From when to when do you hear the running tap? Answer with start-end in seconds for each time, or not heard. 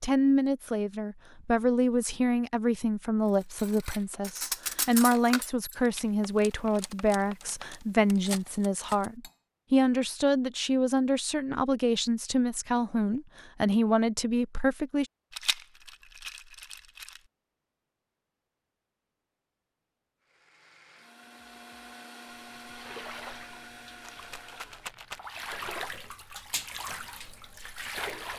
22.4-28.3.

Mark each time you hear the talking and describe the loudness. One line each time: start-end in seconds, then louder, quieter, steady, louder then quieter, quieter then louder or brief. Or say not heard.
0.0-15.1 steady.